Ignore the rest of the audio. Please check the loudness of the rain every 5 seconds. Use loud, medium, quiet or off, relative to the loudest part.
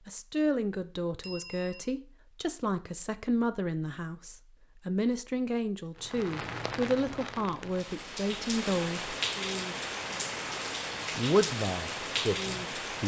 off, loud, loud.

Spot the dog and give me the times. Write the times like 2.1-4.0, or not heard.
not heard.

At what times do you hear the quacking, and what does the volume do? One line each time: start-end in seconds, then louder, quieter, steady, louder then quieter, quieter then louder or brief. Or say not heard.
not heard.